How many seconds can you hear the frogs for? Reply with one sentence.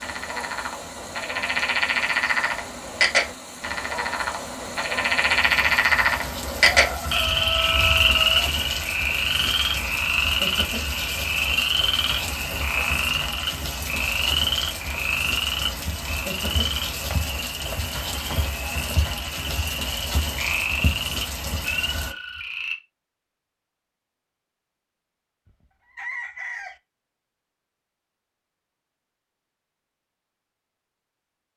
You can hear the frogs for 23 seconds altogether.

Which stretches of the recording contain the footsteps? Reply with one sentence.
You can hear the footsteps from 15.8 to 21.6 s.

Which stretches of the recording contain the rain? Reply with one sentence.
The rain can be heard from 0.0 to 22.1 s.